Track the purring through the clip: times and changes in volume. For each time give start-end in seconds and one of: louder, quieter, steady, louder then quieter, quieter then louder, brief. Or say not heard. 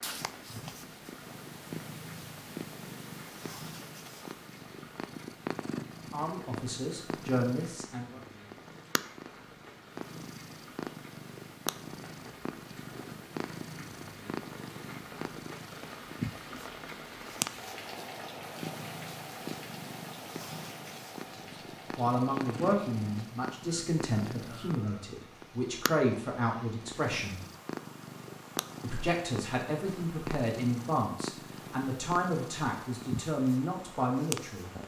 0.0-34.8 steady.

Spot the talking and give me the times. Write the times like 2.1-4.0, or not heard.
6.1-8.2, 21.9-27.4, 28.8-34.7.